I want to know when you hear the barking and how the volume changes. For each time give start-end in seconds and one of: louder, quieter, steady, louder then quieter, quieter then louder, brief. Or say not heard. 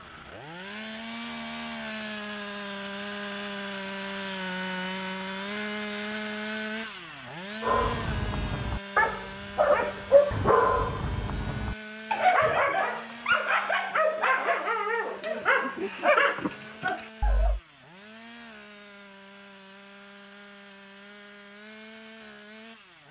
7.6-17.6 steady.